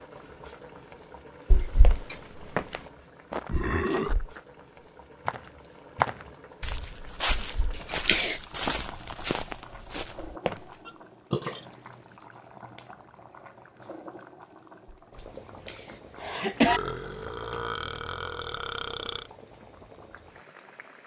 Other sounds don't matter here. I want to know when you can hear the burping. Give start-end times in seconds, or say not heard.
3.5-4.3, 10.8-11.7, 16.6-19.3.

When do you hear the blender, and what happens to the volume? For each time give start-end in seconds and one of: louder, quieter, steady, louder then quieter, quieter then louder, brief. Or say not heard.
not heard.